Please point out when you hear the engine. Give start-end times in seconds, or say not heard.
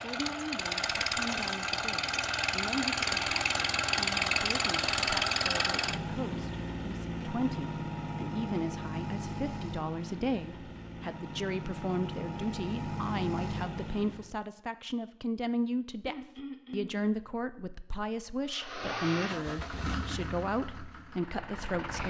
0.0-14.3, 18.4-22.0.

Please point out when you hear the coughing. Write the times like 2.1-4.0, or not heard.
16.0-17.1.